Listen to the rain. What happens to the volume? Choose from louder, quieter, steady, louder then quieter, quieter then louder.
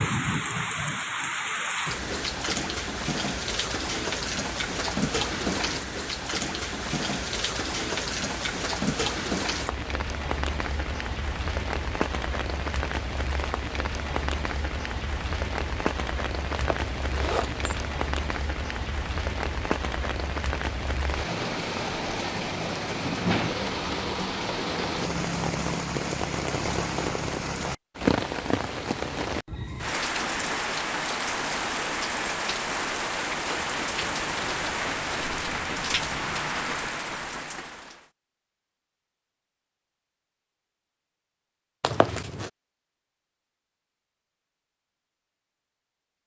steady.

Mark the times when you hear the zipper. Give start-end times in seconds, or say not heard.
16.5-17.9, 41.8-42.5.